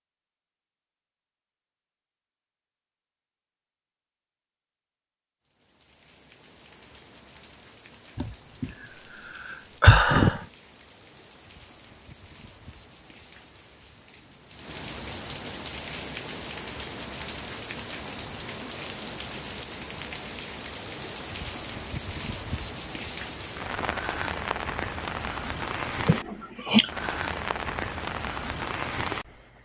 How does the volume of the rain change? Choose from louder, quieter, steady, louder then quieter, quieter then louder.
louder.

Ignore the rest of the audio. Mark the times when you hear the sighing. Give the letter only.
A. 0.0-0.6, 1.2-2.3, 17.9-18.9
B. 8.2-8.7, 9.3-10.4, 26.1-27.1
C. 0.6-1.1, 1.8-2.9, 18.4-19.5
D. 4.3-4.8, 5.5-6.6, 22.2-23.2
B.